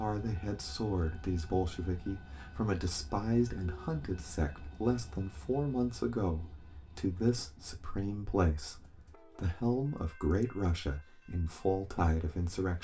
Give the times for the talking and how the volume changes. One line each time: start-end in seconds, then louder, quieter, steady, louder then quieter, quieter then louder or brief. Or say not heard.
0.0-12.7 steady.